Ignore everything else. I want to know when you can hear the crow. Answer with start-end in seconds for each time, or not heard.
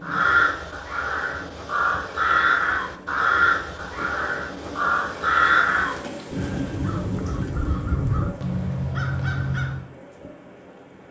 0.0-9.9.